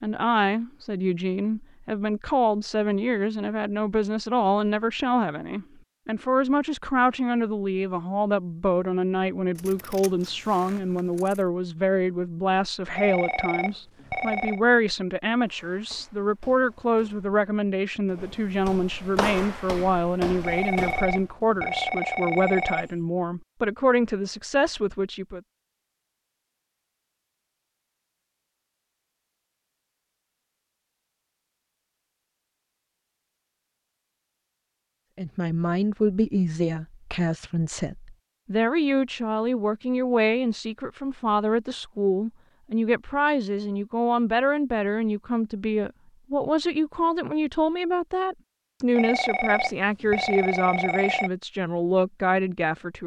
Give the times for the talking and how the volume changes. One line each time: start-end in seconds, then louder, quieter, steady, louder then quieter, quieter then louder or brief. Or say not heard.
0.0-25.4 steady
35.1-53.0 steady.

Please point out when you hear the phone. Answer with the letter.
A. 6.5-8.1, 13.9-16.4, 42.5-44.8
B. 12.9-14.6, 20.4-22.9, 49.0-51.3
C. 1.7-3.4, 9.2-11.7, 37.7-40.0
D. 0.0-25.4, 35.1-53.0
B.